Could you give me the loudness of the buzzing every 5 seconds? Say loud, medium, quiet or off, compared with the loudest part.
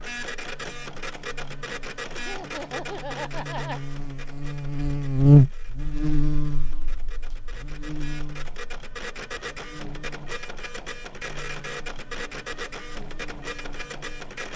quiet, loud, quiet.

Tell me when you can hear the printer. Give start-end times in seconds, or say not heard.
0.0-14.5.